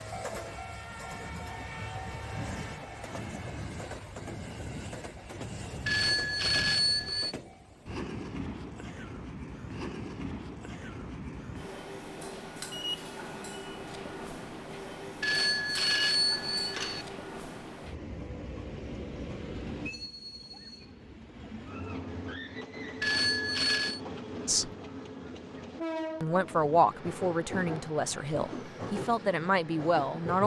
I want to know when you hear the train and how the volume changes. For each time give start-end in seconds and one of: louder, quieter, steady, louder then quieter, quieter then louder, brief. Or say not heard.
0.0-30.4 steady.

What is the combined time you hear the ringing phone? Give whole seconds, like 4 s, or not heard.
4 s.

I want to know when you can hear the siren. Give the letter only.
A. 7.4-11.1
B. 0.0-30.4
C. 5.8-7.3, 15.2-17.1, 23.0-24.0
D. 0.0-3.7
D.